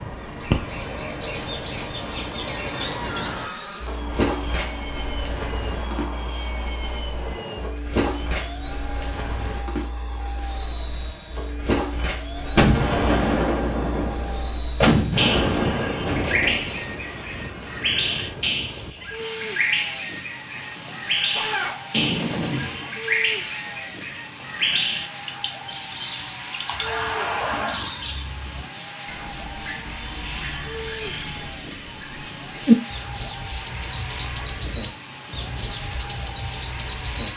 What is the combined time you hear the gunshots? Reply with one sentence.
You can hear the gunshots for 6 seconds altogether.